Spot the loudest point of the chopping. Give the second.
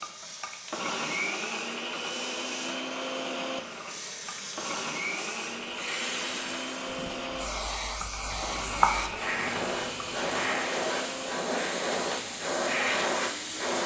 9 s.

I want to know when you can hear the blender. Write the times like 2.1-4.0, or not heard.
0.0-13.8.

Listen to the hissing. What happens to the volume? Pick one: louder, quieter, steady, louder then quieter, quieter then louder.
louder.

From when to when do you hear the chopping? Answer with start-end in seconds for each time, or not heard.
8.0-10.5.